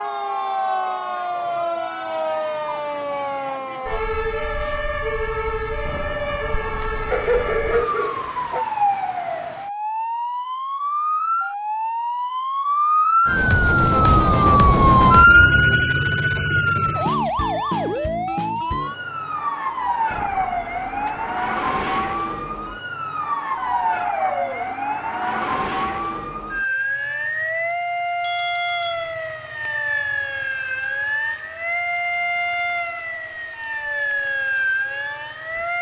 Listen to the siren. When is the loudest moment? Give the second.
15 s.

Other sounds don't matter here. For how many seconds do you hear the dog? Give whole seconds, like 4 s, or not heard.
3 s.